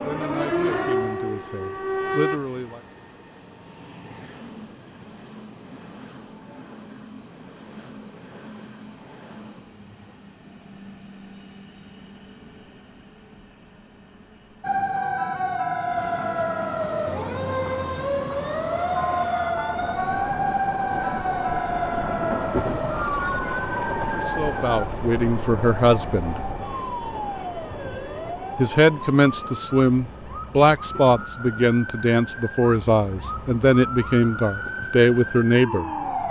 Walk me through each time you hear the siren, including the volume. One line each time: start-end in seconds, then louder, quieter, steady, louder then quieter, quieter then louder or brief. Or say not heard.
0.0-2.4 brief
14.6-36.2 quieter.